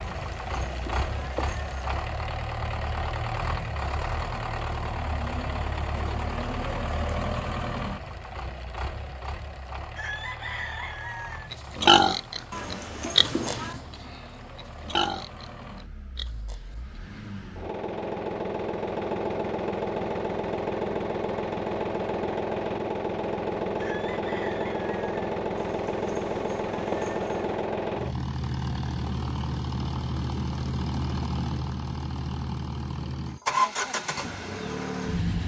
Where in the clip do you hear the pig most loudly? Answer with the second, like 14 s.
12 s.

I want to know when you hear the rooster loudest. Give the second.
11 s.